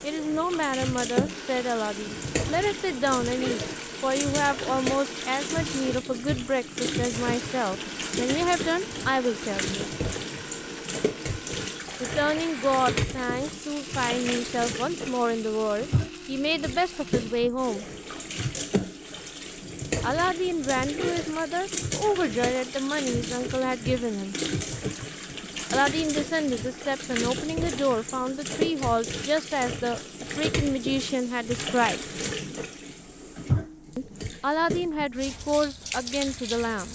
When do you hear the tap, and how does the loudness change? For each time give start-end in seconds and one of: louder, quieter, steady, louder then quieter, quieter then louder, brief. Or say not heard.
0.0-36.9 steady.